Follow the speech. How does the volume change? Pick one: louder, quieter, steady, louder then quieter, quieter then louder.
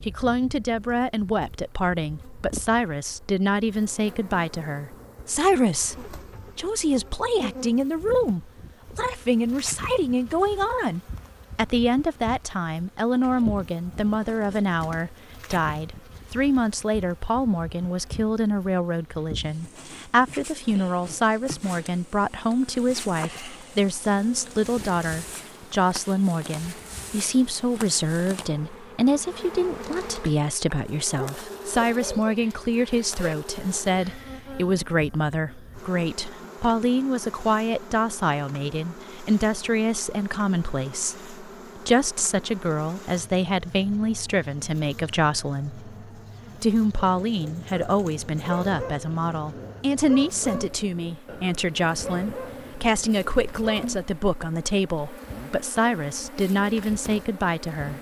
steady.